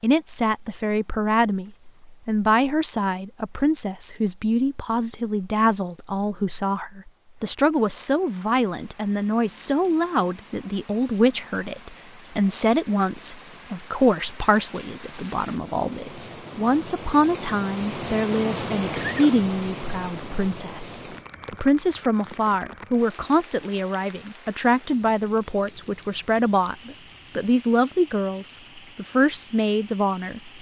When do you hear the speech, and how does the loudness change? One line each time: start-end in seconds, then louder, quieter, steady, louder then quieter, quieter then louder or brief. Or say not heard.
0.0-30.5 steady.